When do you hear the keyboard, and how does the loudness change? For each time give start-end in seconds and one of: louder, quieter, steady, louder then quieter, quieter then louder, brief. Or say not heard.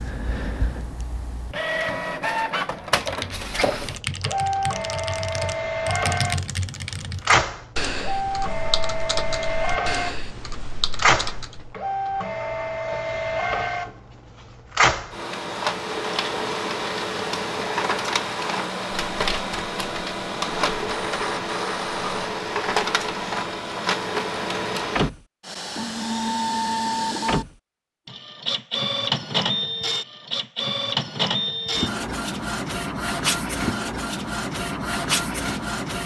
2.9-11.8 steady.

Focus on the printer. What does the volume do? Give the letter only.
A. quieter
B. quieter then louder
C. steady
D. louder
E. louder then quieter
C.